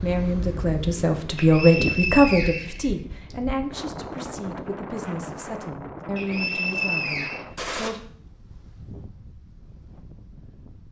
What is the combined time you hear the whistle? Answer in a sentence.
You can hear the whistle for 3 seconds altogether.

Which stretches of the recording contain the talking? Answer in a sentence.
You can hear the talking from 0.0 to 8.0 s.